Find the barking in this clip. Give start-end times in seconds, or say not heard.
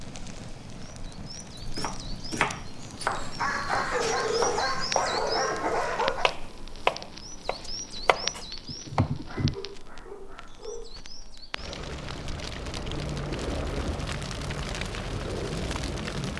3.4-6.3, 9.2-10.9.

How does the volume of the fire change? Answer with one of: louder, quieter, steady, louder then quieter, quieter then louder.
louder.